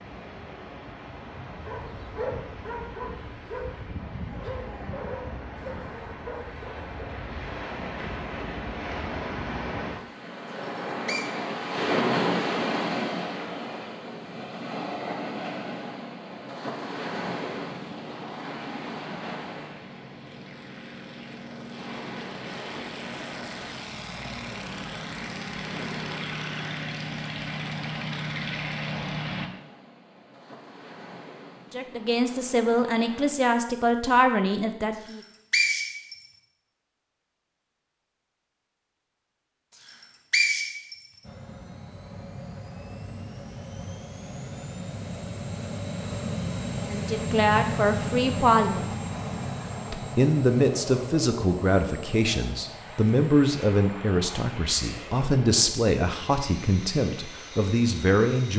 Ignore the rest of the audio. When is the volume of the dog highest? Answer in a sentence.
The loudest moment of the dog is at 2 seconds.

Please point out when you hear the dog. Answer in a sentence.
The dog can be heard from 1.6 to 7.0 s.